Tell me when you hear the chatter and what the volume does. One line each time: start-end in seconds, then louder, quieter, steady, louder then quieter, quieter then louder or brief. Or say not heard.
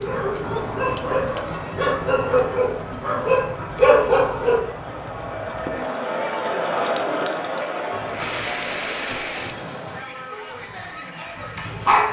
0.2-12.0 louder then quieter.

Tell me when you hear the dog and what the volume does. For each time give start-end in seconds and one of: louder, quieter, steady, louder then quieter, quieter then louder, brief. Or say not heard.
0.0-4.6 louder
10.3-12.0 brief.